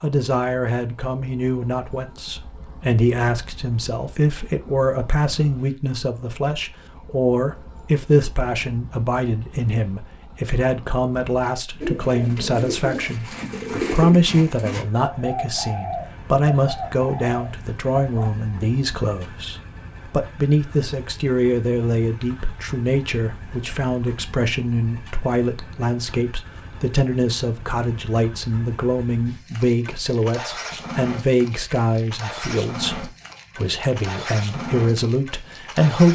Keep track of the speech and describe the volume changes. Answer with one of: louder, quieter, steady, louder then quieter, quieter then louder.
steady.